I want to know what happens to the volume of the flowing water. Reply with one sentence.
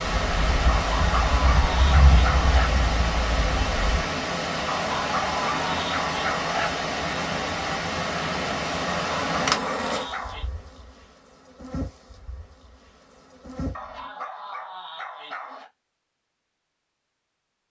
The loudness of the flowing water stays about the same.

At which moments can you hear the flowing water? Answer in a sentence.
You can hear the flowing water from 0.0 to 9.6 s.